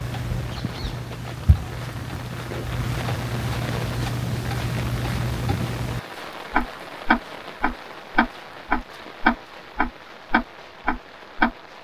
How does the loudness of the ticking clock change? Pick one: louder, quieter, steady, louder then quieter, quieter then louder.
louder.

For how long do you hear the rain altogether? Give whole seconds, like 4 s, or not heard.
12 s.